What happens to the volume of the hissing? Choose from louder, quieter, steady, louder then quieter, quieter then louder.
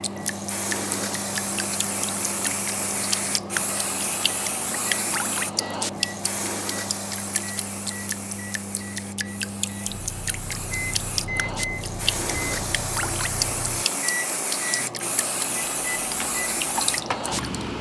quieter then louder.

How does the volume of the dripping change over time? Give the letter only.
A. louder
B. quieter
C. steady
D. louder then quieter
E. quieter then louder
C.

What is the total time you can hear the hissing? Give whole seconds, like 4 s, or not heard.
18 s.